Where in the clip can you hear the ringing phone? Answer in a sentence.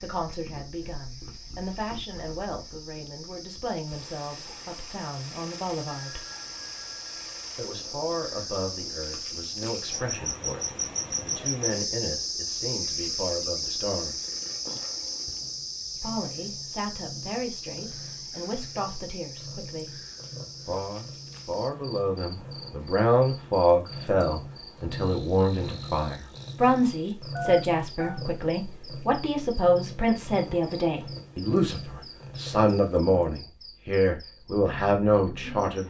You can hear the ringing phone from 5.8 to 7.3 s and from 27.4 to 28.2 s.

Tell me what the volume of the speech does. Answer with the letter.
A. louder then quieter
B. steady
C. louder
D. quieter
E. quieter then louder
C.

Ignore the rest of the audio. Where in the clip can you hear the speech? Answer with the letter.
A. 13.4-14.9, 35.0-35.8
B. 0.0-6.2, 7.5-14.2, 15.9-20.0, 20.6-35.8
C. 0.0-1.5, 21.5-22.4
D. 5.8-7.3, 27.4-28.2
B.